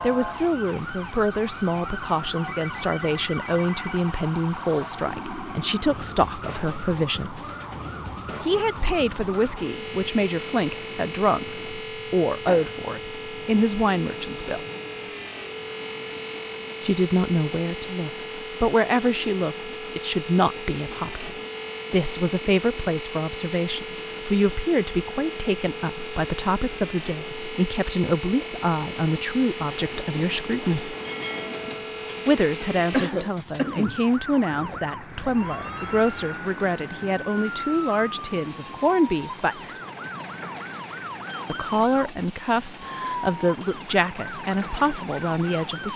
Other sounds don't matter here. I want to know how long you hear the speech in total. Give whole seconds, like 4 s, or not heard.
40 s.